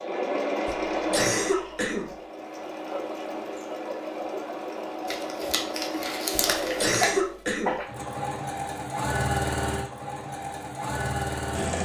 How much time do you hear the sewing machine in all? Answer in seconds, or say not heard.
12 s.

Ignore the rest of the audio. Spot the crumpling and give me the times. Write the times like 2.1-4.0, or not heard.
5.0-7.1.